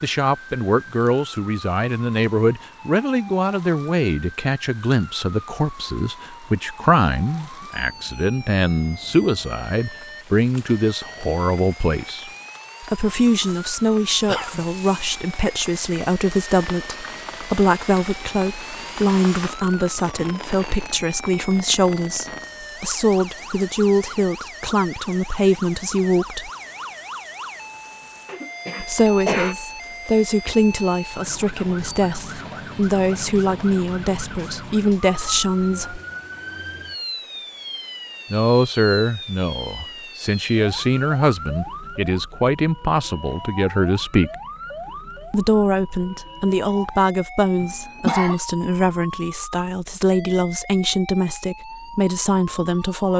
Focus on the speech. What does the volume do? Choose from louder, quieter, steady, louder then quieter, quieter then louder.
steady.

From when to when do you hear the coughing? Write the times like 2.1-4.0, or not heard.
14.2-14.7, 28.2-29.6, 47.6-48.4.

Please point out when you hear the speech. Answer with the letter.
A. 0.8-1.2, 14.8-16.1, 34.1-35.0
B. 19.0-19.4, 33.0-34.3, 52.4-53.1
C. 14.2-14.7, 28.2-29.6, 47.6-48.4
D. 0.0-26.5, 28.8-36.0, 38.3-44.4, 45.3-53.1
D.